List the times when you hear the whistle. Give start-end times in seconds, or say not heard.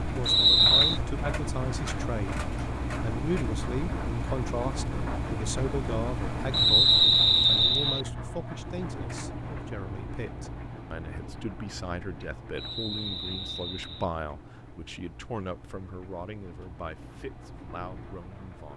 0.2-1.0, 6.5-8.1, 12.6-14.1.